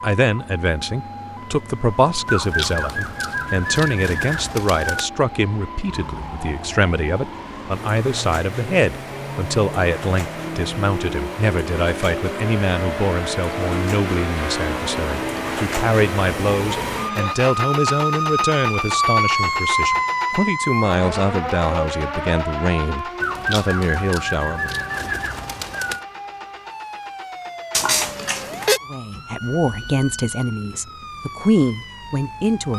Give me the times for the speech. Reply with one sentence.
You can hear the speech from 0.0 to 24.8 s and from 28.9 to 32.7 s.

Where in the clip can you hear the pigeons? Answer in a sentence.
The pigeons can be heard from 2.2 to 5.1 s and from 23.2 to 26.1 s.